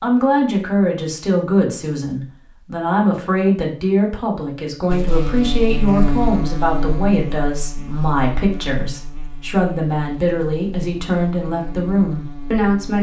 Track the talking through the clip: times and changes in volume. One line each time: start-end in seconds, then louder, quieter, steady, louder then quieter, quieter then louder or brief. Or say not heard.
0.0-12.9 steady.